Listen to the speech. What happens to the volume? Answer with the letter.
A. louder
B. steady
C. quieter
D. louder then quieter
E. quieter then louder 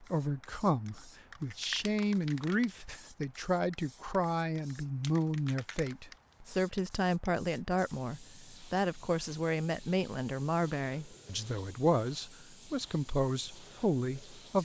B.